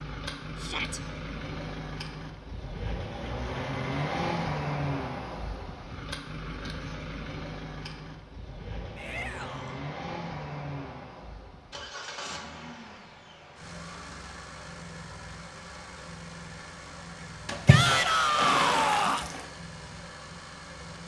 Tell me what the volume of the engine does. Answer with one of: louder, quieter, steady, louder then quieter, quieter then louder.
quieter.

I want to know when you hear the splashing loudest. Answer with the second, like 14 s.
18 s.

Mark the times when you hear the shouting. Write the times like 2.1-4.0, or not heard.
0.6-1.0, 8.9-9.8, 17.6-19.3.